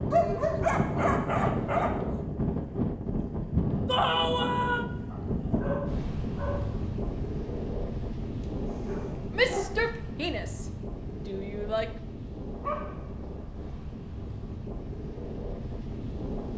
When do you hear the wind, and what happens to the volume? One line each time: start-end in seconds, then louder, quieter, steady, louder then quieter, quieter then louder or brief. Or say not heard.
0.0-16.5 quieter.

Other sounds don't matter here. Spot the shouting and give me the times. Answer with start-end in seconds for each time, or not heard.
3.9-4.8, 9.3-11.9.